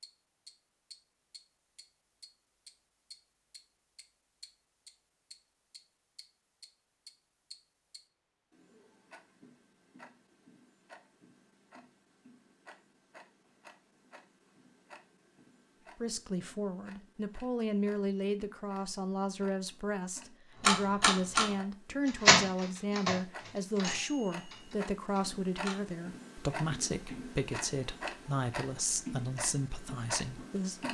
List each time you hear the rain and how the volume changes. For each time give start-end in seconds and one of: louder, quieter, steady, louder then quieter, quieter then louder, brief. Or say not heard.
not heard.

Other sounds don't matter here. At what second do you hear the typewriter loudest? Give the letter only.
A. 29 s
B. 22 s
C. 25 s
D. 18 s
B.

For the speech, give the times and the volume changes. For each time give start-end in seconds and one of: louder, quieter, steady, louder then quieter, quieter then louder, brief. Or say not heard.
16.0-30.8 steady.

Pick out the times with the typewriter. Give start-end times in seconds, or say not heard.
20.6-26.0.